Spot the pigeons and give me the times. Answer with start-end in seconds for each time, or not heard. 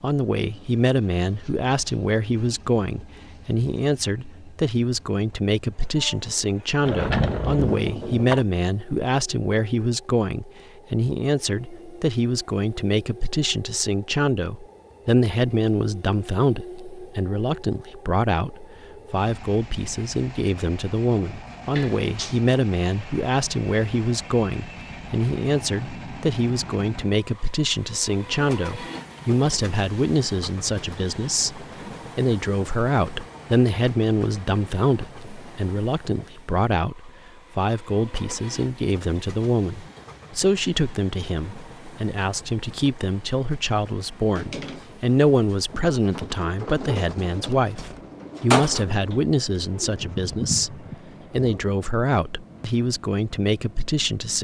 44.4-51.8.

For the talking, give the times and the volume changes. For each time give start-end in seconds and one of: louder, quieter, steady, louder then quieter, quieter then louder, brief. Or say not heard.
0.0-54.3 steady.